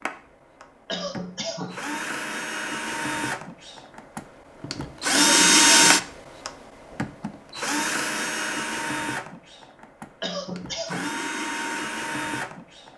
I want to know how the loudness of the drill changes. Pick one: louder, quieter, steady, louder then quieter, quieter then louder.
louder then quieter.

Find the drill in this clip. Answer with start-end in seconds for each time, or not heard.
0.0-12.9.